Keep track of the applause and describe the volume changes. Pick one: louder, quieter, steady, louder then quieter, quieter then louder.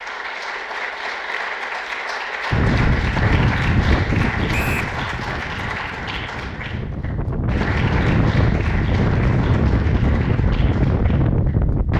quieter.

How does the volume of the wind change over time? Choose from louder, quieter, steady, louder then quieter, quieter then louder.
quieter then louder.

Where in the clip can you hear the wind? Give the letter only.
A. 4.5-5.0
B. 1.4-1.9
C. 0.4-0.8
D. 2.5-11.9
D.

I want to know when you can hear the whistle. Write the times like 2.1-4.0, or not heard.
4.5-5.0.